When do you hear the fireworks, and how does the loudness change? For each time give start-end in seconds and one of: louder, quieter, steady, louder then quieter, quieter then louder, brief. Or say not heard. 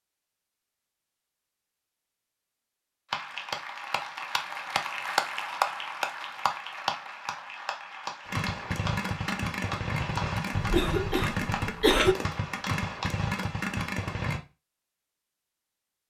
8.2-14.4 steady.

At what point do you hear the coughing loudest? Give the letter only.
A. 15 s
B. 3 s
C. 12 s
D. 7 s
C.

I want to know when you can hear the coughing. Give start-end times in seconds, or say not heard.
10.6-12.2.